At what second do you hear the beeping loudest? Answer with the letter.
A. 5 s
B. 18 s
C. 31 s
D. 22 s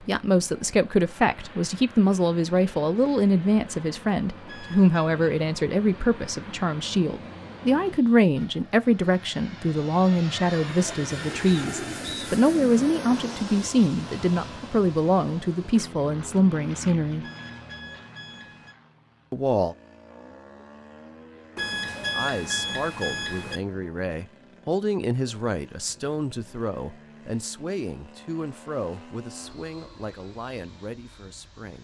D.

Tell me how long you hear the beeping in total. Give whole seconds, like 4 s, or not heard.
4 s.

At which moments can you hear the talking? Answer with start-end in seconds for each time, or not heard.
0.0-17.2, 19.3-19.8, 22.1-31.7.